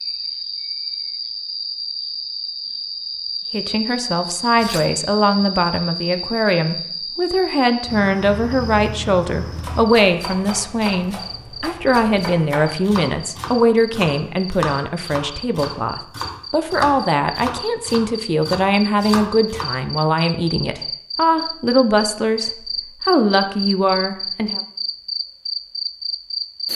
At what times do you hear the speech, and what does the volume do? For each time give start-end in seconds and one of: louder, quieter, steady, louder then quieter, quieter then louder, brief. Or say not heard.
3.5-24.6 steady.